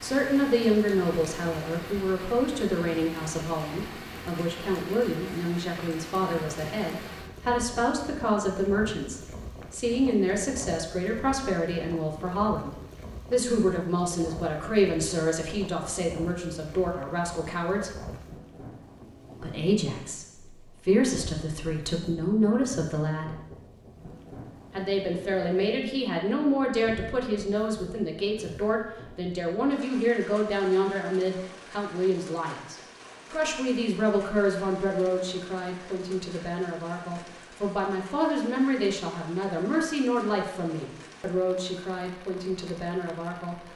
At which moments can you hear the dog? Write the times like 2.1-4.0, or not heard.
not heard.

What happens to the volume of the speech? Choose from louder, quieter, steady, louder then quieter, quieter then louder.
steady.